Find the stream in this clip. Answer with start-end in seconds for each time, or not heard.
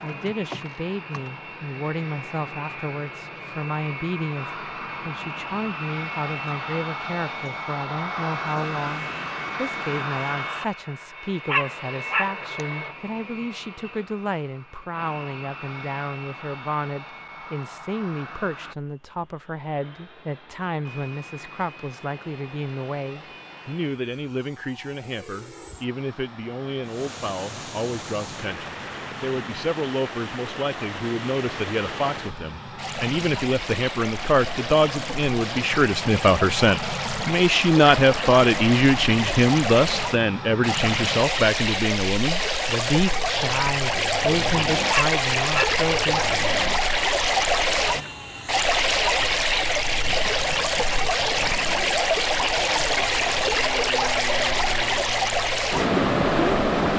26.8-56.9.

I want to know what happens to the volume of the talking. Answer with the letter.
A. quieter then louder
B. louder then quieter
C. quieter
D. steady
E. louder
E.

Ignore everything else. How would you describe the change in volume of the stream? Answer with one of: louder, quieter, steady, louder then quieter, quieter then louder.
louder.